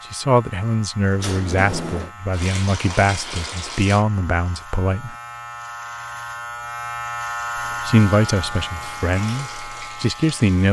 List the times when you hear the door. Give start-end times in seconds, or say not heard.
1.1-2.1, 7.6-9.1.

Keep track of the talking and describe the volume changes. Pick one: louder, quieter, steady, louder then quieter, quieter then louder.
steady.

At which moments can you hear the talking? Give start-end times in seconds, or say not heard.
0.1-5.2, 7.5-10.6.